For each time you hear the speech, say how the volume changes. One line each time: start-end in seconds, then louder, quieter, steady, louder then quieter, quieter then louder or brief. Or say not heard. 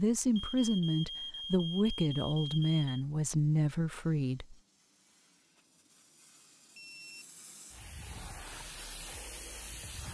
0.0-4.5 steady.